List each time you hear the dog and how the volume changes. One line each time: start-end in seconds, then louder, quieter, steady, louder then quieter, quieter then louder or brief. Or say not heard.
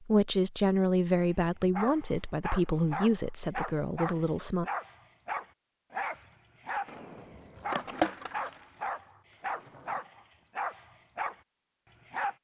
1.1-12.3 steady.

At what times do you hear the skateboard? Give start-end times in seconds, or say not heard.
6.8-10.0.